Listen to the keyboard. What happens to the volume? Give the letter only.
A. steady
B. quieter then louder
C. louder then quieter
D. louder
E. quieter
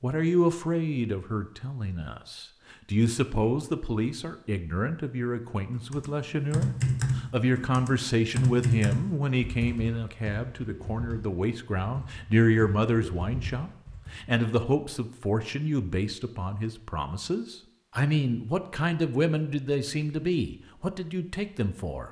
E.